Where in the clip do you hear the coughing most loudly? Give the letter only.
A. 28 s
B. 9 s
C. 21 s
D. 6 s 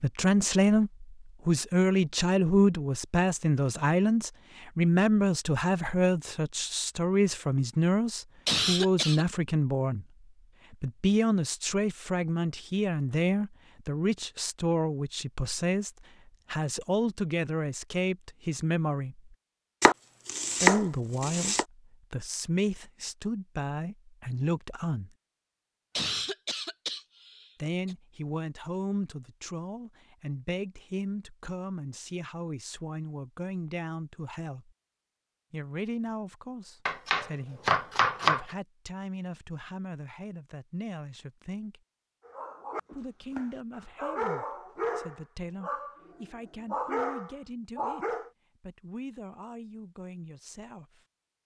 B.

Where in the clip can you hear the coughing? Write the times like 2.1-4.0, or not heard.
8.4-9.2, 25.9-27.9.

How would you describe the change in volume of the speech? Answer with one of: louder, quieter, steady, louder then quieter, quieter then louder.
quieter.